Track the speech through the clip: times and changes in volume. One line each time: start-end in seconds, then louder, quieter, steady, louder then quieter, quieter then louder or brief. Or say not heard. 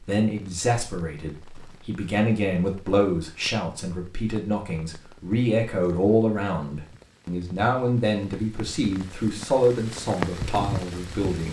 0.0-11.4 steady.